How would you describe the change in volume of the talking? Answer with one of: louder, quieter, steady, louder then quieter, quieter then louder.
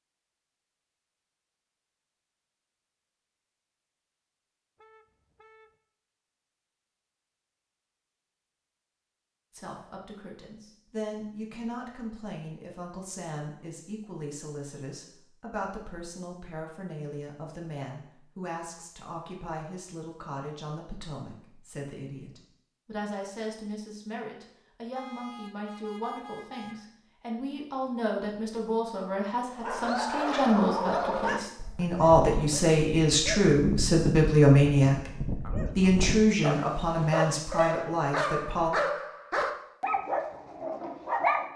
louder.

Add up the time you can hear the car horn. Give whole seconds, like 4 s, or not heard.
3 s.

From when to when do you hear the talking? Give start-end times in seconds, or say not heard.
9.5-38.7.